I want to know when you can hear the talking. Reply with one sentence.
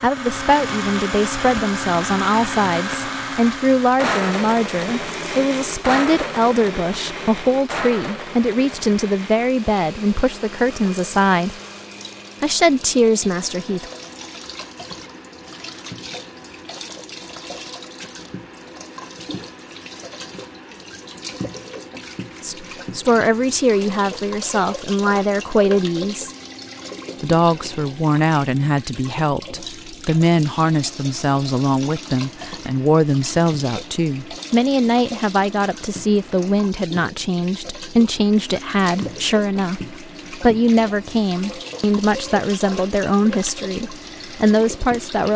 You can hear the talking from 0.0 to 11.6 s, from 12.4 to 13.8 s, from 22.4 to 26.3 s and from 27.2 to 45.3 s.